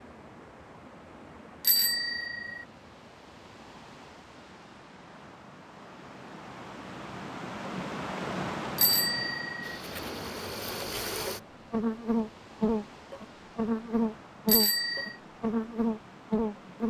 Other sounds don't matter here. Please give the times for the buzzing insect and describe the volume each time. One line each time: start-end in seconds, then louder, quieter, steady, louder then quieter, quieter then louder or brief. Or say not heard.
9.6-16.8 louder.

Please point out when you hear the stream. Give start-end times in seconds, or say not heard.
0.0-16.8.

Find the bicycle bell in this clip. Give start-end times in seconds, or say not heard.
1.6-2.6, 8.8-9.8, 14.4-15.2.